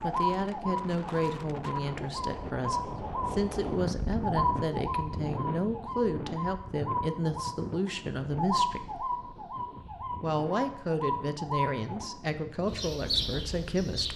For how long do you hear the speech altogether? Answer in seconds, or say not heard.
13 s.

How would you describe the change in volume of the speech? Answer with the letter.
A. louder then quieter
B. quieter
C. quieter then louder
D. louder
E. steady
E.